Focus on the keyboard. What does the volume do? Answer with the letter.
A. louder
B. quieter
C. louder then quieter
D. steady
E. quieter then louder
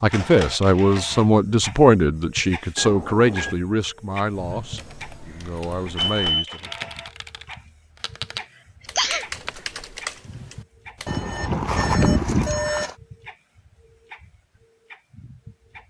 A.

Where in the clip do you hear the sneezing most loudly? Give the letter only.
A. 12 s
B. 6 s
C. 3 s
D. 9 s
D.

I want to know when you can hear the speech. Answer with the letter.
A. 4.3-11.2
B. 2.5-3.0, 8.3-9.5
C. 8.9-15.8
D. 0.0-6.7
D.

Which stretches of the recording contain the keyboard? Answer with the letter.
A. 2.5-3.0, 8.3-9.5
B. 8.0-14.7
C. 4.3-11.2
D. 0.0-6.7
C.